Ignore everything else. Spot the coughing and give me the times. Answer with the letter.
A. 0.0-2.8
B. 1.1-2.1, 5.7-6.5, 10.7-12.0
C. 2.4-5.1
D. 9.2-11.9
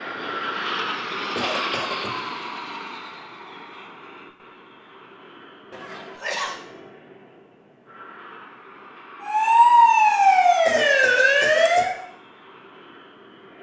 B.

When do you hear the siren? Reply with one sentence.
You can hear the siren from 9.2 to 11.9 s.